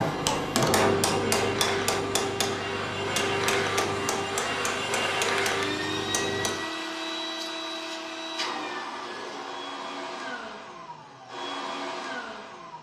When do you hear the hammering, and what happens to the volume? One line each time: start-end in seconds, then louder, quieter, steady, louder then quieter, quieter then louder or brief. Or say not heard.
0.0-6.7 quieter.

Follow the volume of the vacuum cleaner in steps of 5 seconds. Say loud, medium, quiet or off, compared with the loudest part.
loud, loud, medium.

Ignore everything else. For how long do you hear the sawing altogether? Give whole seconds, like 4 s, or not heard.
not heard.